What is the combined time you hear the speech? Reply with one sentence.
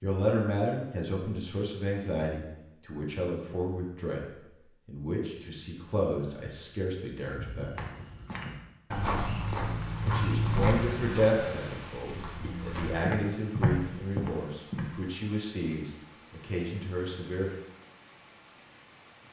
You can hear the speech for 15 seconds altogether.